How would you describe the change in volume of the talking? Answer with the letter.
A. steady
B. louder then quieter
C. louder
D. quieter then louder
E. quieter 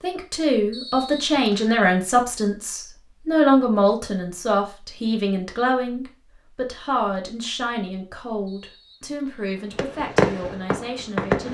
E.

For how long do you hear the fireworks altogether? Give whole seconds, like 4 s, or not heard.
2 s.